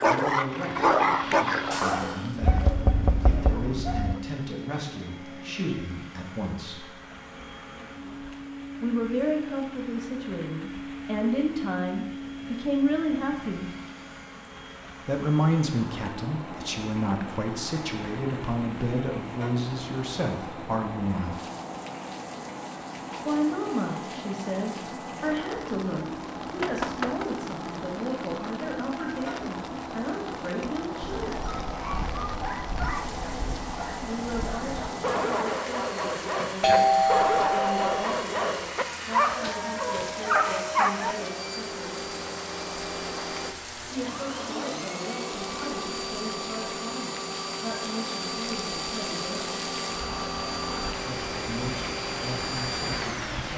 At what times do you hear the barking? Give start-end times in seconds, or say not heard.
0.0-4.2, 31.1-41.1.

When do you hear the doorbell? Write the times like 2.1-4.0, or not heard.
1.7-2.3, 36.6-38.0.